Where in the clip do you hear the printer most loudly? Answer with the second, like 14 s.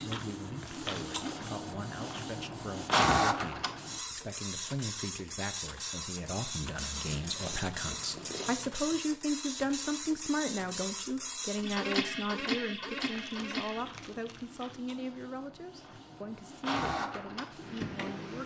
3 s.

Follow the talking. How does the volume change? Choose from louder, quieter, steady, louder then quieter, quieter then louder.
louder then quieter.